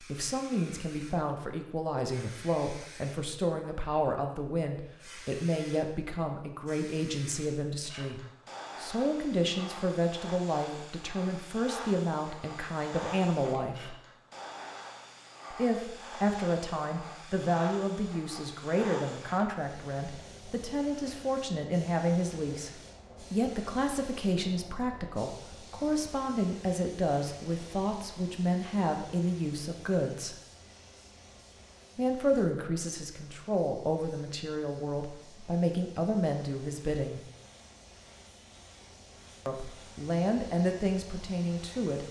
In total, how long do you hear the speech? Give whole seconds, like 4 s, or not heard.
37 s.